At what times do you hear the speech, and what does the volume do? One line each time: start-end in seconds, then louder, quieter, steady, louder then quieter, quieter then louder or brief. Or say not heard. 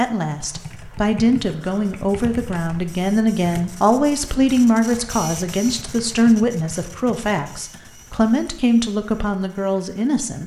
0.0-10.4 steady.